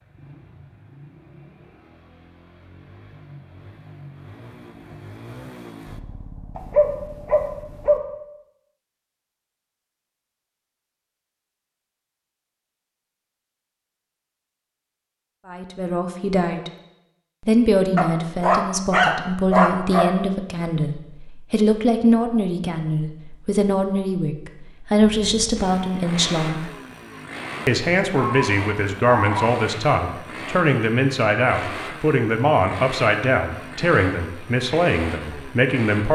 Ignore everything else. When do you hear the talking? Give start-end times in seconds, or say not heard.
15.4-16.7, 17.4-26.7, 27.6-36.1.